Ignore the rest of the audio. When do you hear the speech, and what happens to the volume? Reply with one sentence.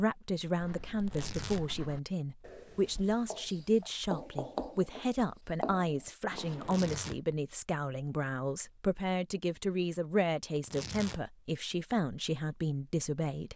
The speech can be heard from 0.0 to 13.5 s, at a steady volume.